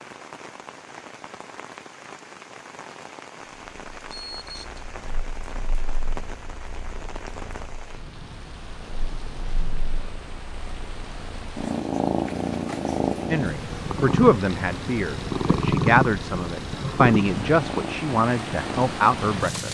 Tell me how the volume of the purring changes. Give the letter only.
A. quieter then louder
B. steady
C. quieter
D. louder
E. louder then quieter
E.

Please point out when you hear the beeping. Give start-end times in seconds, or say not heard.
4.1-4.8.